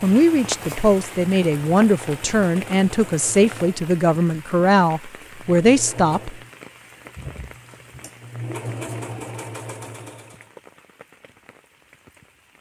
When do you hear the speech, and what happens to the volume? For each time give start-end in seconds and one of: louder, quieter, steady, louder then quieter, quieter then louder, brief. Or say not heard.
0.0-6.3 steady.